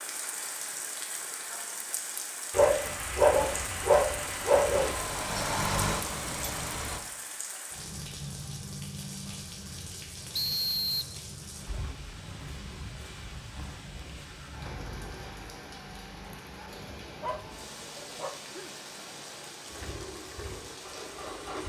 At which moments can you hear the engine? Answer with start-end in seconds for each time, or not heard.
3.5-7.0, 19.6-21.6.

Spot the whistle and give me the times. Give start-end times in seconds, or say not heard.
10.3-11.2.